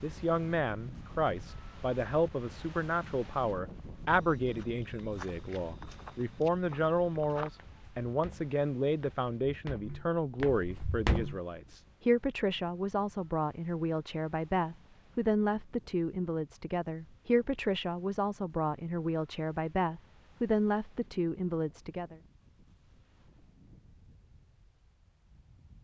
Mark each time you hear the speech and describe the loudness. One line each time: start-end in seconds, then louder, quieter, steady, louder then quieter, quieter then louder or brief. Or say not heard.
0.0-22.1 steady.